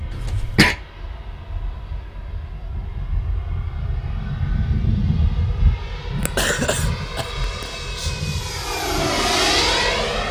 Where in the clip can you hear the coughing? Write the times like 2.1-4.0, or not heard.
0.1-0.8, 6.2-8.1.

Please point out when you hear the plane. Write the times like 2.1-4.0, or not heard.
0.0-10.2.